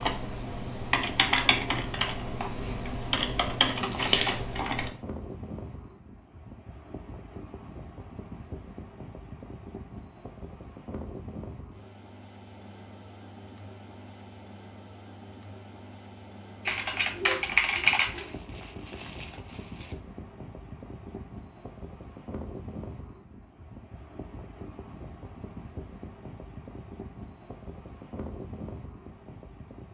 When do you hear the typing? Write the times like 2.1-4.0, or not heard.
0.0-4.9, 16.6-18.2.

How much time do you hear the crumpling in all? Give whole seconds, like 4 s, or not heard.
2 s.